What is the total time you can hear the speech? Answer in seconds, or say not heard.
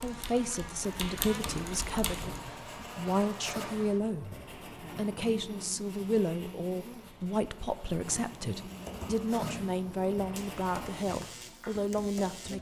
12 s.